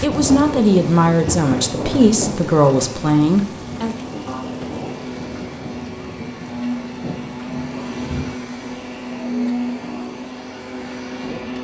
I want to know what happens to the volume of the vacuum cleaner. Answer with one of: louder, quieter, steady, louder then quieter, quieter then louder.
louder.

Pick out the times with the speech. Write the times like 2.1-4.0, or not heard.
0.0-4.0.